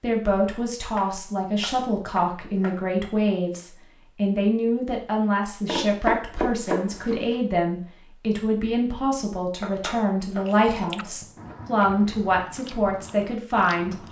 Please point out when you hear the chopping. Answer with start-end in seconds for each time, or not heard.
0.5-3.1, 5.7-7.3, 9.6-11.6.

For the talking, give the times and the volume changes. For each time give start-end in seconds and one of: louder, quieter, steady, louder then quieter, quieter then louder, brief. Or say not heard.
0.0-14.0 steady.